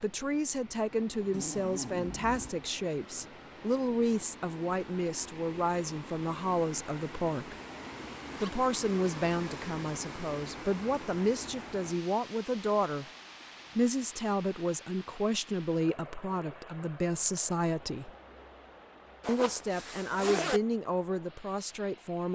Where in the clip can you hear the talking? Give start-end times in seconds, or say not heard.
0.0-7.5, 8.4-13.1, 13.8-18.1, 19.2-22.2.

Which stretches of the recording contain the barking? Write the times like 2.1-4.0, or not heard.
not heard.